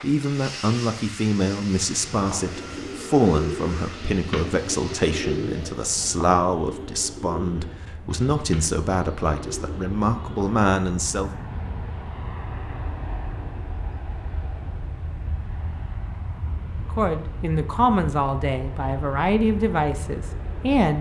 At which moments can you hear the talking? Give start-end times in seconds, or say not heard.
0.0-11.3, 16.9-20.9.